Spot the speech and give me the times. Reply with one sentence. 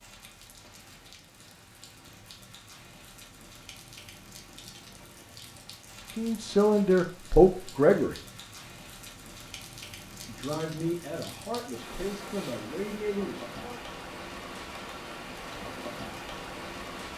The speech can be heard from 6.2 to 8.2 s and from 10.2 to 13.8 s.